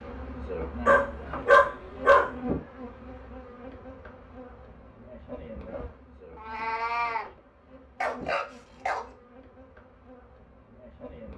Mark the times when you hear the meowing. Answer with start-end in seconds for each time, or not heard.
6.3-7.3.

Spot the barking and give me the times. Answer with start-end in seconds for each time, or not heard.
0.8-2.3, 8.0-9.1.